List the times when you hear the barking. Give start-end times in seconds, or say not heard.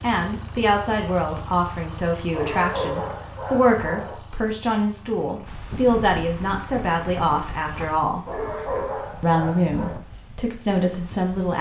2.3-4.2, 8.2-9.9.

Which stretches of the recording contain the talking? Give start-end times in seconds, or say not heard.
0.0-8.2, 9.2-11.5.